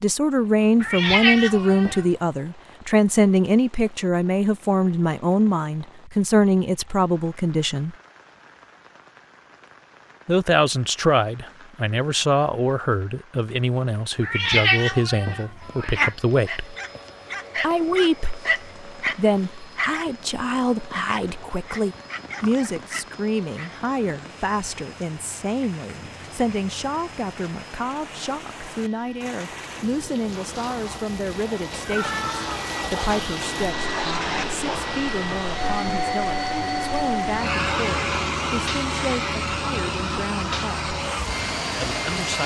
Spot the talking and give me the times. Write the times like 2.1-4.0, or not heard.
0.0-8.0, 10.2-16.8, 17.6-40.9, 41.7-42.4.